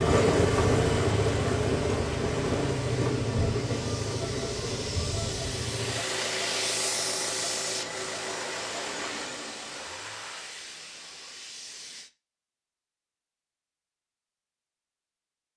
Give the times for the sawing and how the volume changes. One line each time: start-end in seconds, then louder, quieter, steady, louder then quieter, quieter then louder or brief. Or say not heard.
not heard.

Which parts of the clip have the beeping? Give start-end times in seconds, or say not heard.
not heard.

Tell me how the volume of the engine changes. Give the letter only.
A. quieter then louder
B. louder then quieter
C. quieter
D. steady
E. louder
C.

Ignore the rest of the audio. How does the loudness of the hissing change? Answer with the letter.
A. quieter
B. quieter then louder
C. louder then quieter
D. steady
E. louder
C.